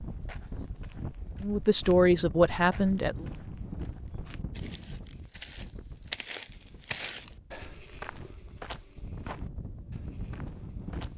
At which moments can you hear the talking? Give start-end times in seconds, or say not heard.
1.4-3.2.